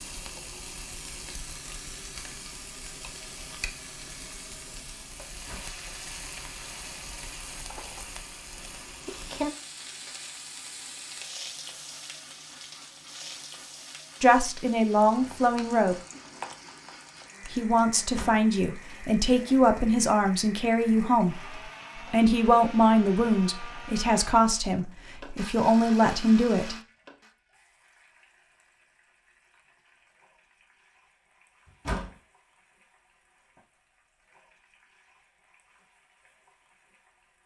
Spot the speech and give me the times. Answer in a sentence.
The speech can be heard from 14.2 to 15.9 s and from 17.5 to 26.8 s.